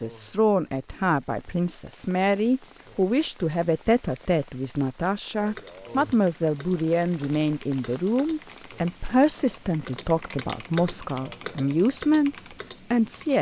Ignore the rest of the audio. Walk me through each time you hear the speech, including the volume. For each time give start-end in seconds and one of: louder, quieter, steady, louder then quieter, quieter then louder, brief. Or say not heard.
0.0-13.3 steady.